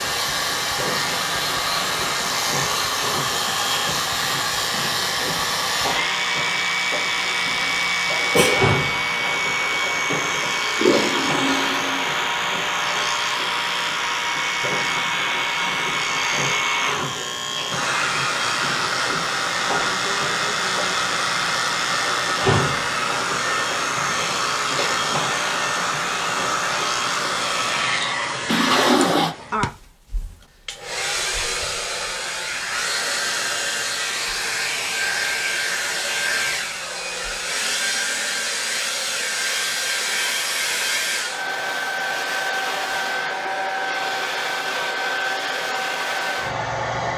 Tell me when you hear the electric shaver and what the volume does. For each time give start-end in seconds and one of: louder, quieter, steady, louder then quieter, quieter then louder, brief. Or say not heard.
0.0-28.1 steady.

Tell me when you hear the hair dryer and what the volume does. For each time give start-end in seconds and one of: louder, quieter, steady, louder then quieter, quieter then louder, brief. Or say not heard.
0.0-47.1 steady.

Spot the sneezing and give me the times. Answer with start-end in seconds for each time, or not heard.
7.5-8.6.